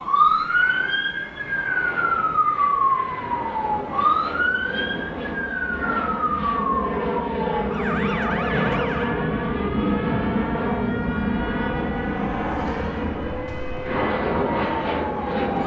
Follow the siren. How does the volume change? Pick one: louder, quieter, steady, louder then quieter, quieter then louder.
quieter.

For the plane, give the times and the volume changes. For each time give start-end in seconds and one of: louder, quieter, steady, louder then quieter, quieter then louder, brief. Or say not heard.
0.0-15.6 louder.